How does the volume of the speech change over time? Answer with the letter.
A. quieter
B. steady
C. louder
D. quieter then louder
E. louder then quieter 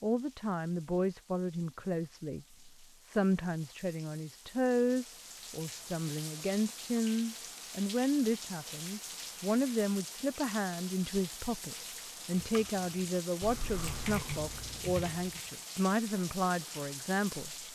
B.